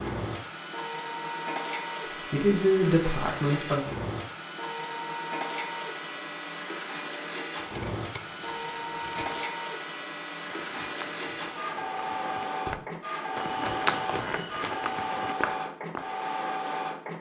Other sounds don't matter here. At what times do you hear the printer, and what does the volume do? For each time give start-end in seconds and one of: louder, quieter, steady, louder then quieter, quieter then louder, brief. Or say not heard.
0.0-17.1 steady.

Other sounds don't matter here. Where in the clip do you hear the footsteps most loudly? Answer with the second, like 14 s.
14 s.